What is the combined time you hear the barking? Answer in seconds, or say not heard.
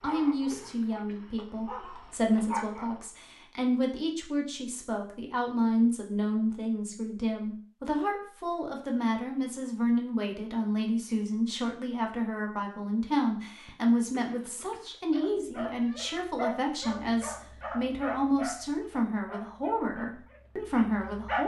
9 s.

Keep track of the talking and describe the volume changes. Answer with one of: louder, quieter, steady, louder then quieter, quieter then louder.
steady.